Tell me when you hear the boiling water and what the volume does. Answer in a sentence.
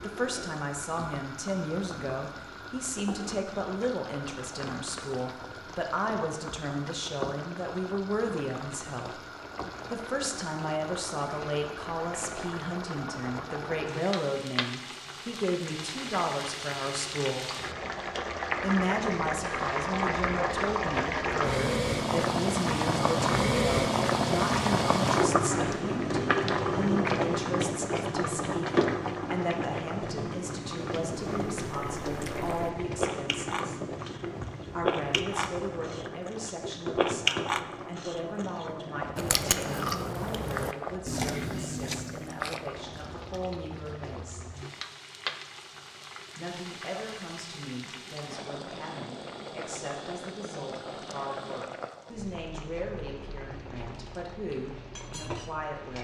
You can hear the boiling water from 0.0 to 55.9 s, getting louder then quieter.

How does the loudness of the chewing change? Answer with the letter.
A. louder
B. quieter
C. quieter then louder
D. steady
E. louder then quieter
E.